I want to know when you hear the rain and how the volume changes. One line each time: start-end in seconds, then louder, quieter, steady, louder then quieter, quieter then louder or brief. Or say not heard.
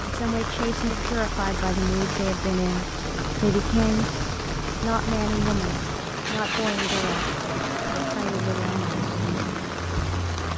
0.0-10.5 steady.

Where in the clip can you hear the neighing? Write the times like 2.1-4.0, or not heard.
not heard.